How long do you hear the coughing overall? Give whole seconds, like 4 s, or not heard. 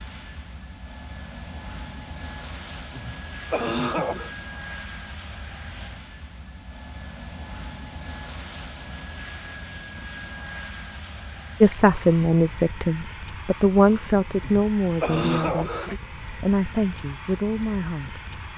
3 s.